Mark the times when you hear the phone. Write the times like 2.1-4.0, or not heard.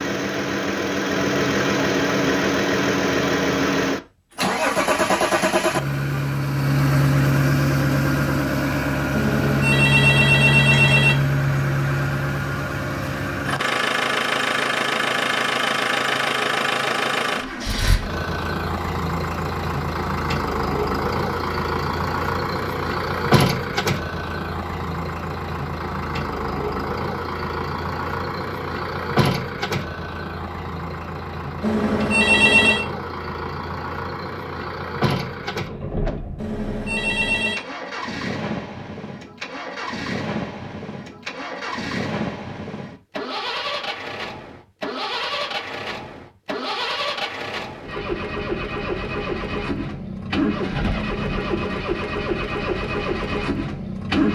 9.1-11.2, 31.6-32.9, 36.4-37.6.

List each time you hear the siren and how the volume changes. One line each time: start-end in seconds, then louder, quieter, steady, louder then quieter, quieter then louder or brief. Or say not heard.
not heard.